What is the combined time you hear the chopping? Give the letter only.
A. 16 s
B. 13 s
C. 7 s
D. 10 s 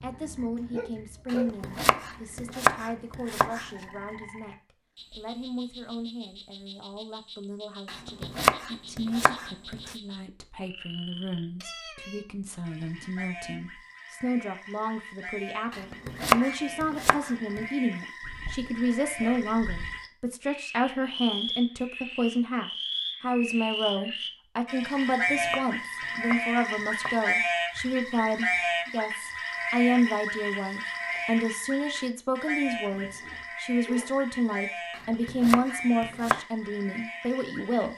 D.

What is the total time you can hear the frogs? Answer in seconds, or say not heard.
38 s.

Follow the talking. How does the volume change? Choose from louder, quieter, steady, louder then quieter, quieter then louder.
louder.